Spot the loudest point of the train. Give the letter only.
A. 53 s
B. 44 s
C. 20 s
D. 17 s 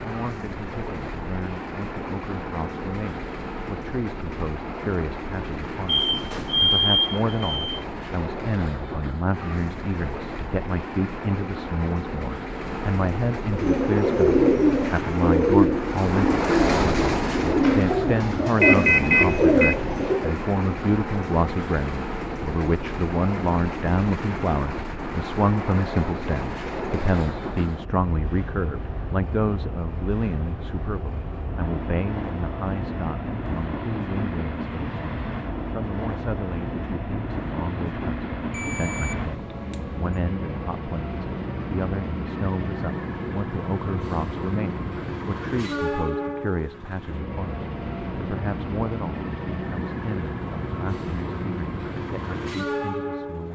D.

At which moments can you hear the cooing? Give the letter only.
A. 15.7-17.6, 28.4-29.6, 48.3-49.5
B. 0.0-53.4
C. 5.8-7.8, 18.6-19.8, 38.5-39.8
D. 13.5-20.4
D.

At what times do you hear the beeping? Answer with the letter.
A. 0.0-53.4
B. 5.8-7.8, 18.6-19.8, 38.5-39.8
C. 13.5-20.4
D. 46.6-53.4
B.